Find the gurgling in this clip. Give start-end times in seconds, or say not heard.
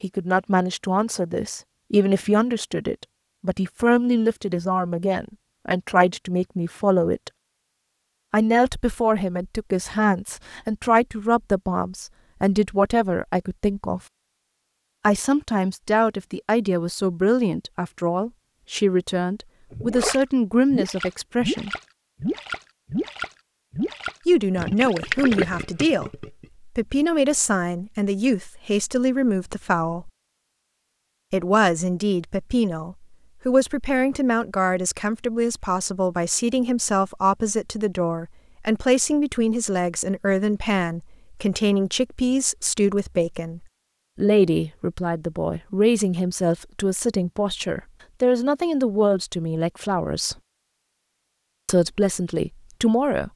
19.7-26.4.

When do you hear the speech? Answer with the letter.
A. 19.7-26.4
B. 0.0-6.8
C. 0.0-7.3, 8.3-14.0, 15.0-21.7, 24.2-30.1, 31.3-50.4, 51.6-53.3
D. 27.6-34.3
C.